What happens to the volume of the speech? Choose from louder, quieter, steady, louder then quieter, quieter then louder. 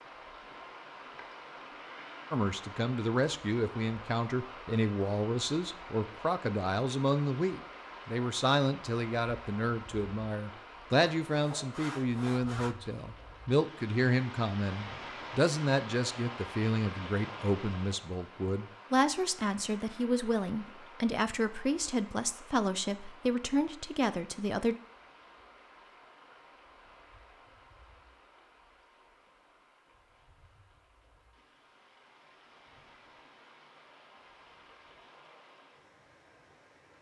steady.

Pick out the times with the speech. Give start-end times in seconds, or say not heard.
2.3-24.8.